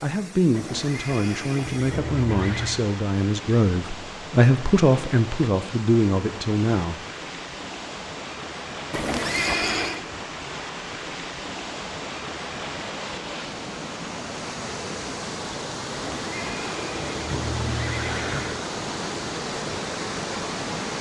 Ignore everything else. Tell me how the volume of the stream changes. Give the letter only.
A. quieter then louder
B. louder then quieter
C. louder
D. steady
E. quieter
C.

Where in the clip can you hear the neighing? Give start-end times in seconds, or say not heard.
0.5-2.9, 8.9-10.1, 15.9-18.6.